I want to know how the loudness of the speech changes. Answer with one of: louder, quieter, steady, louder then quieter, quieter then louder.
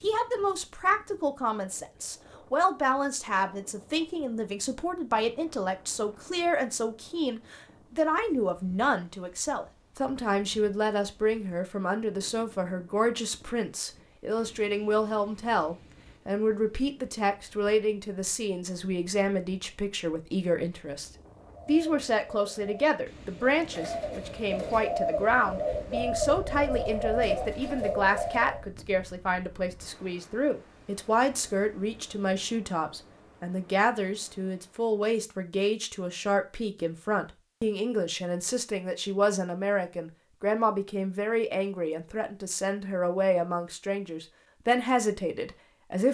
steady.